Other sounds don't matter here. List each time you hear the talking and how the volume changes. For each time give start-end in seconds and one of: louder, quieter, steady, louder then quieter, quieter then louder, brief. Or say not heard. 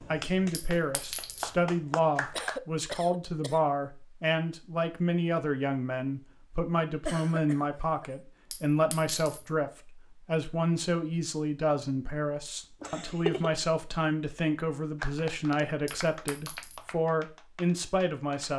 0.0-18.5 steady.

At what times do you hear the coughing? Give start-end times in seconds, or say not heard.
2.4-3.6, 7.0-8.1, 12.8-13.6.